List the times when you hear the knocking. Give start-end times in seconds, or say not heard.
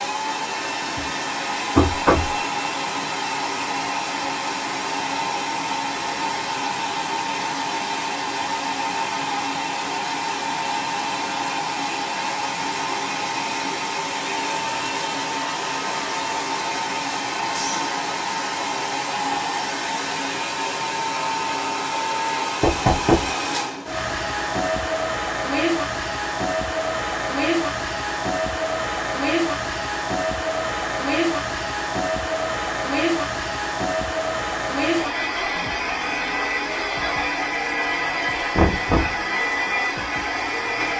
1.8-2.4, 22.6-23.3, 38.5-39.2.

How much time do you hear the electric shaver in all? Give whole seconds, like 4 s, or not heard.
not heard.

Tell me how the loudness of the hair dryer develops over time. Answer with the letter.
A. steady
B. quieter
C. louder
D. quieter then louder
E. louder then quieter
A.